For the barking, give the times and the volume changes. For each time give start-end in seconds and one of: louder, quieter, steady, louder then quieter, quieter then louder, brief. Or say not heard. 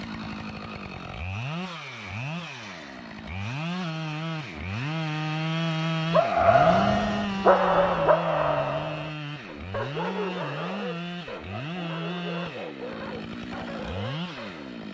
6.1-14.8 quieter.